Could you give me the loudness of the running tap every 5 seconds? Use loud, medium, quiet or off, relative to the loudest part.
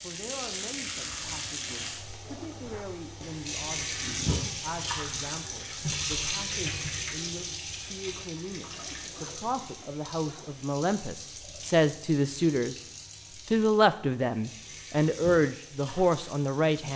loud, loud, medium, medium.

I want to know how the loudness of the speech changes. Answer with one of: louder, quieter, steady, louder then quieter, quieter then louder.
louder.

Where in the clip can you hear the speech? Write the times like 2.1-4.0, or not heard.
0.0-12.8, 13.5-16.9.